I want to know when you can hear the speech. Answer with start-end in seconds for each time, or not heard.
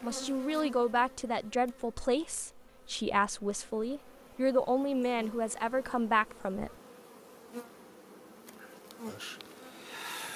0.0-6.7.